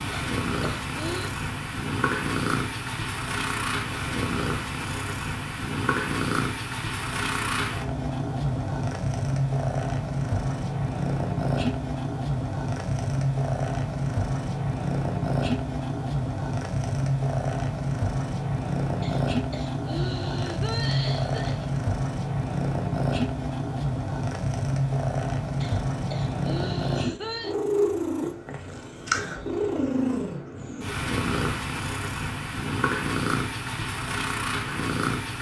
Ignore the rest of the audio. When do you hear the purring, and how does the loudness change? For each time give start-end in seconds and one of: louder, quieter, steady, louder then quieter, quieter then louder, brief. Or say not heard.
0.0-35.3 steady.